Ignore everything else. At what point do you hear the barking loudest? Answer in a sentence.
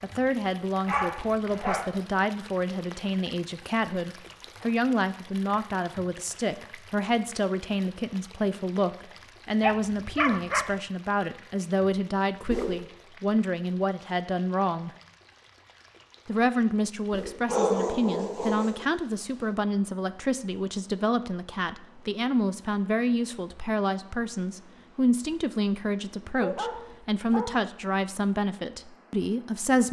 The volume of the barking peaks at 18 seconds.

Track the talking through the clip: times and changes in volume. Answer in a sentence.
You can hear the talking from 0.0 to 14.9 s, at a steady volume; and from 16.2 to 29.8 s, at a steady volume.